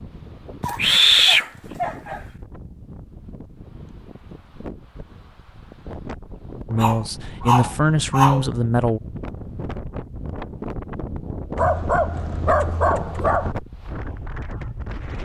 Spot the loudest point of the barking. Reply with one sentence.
The volume of the barking peaks at 1 second.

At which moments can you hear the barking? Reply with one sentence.
You can hear the barking from 0.6 to 2.2 s, from 6.8 to 8.4 s and from 11.6 to 13.6 s.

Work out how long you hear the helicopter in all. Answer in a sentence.
You can't hear the helicopter here.